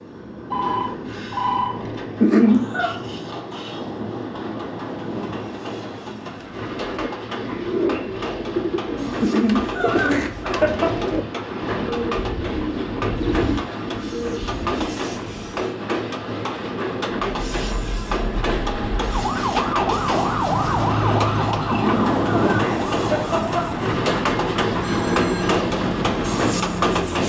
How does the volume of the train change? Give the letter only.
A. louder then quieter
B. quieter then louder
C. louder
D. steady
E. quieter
C.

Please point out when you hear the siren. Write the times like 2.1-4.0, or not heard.
17.3-27.2.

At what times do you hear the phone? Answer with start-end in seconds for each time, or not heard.
0.5-1.9, 24.8-25.6.